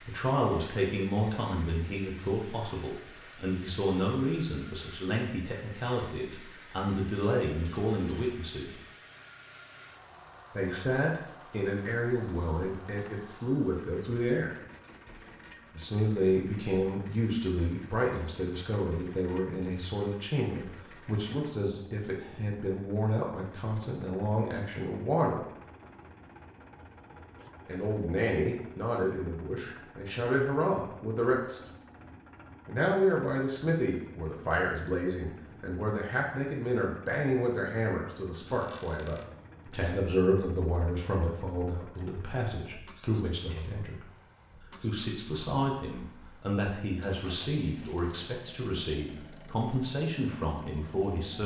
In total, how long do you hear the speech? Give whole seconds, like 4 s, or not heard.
44 s.